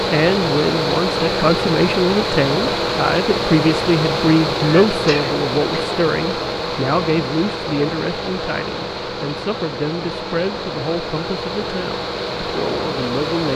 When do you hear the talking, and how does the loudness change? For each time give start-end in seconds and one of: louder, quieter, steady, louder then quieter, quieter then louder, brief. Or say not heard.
0.0-13.5 quieter.